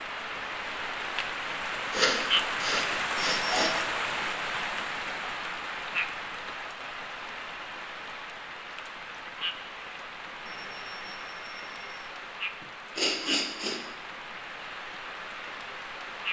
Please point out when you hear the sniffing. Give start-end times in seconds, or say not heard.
1.9-3.7, 12.6-13.8.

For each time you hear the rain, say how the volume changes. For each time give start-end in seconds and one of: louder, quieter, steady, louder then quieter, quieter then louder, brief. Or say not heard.
0.0-16.2 quieter.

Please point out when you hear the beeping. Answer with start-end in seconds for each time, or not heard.
3.1-3.6, 10.4-12.1.